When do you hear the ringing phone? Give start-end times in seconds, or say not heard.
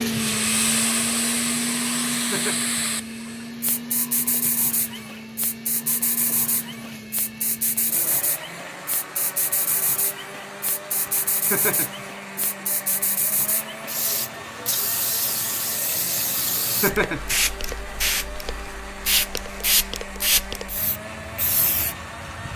not heard.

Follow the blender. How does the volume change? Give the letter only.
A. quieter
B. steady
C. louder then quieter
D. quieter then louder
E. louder
A.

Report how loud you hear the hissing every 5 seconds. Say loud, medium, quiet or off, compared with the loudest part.
loud, medium, medium, loud, loud.